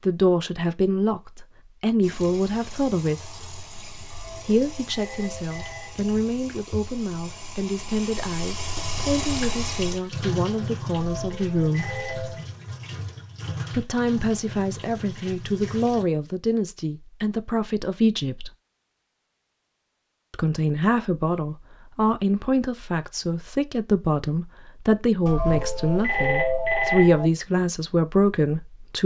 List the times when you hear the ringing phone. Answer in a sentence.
The ringing phone can be heard from 4.0 to 6.1 s, from 10.9 to 12.4 s and from 25.2 to 27.2 s.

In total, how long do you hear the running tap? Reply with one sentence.
You can hear the running tap for 14 seconds altogether.